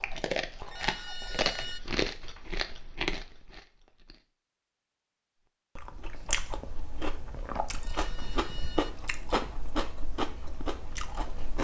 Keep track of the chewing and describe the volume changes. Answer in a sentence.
The loudness of the chewing stays about the same.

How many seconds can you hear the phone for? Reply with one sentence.
You can hear the phone for 2 seconds altogether.